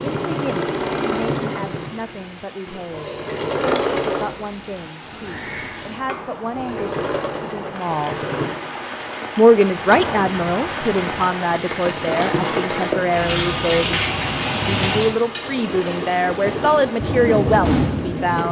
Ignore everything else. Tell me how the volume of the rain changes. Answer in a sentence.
The loudness of the rain goes up.